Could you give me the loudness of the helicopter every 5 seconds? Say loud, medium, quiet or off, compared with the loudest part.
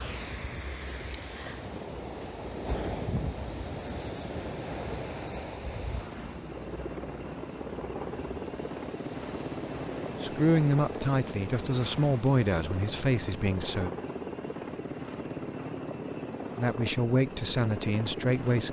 medium, loud, loud, loud.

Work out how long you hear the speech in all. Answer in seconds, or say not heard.
6 s.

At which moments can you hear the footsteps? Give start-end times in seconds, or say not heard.
not heard.